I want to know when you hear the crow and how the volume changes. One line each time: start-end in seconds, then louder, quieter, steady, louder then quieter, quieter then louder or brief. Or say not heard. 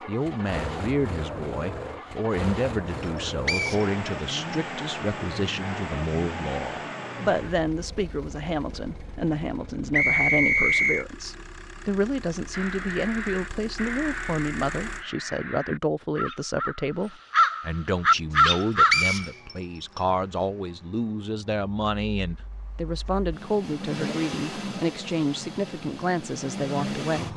12.5-19.1 louder.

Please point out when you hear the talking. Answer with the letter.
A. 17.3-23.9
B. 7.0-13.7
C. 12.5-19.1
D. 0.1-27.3
D.